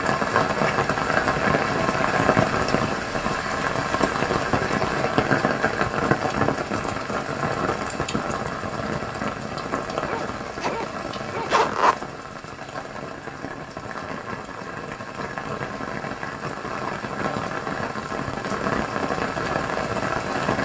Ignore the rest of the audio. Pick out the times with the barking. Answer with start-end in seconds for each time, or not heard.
10.1-11.6.